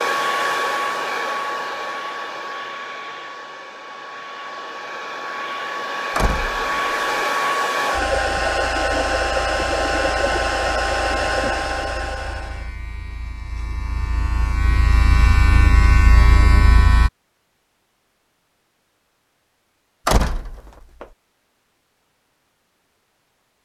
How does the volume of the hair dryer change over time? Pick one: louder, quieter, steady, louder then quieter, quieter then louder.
quieter then louder.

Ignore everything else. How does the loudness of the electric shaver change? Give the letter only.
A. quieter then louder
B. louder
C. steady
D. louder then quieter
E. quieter
B.